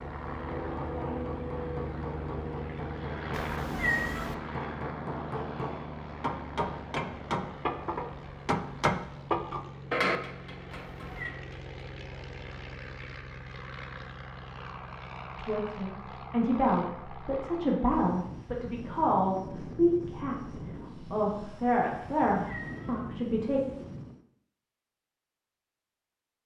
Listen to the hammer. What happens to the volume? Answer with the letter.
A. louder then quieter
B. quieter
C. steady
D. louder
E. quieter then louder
D.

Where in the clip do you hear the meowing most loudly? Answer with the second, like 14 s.
4 s.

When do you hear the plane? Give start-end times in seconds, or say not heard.
0.0-24.2.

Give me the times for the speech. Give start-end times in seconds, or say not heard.
15.3-23.6.